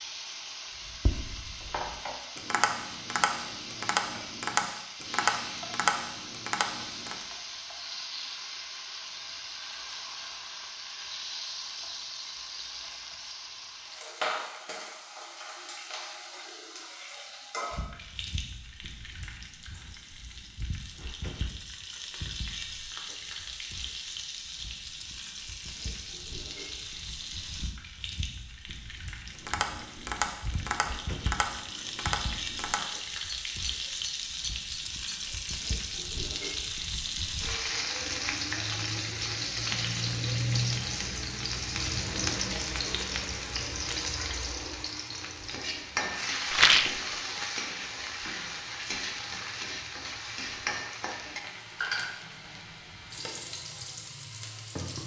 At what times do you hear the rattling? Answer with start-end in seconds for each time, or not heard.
46.5-47.0.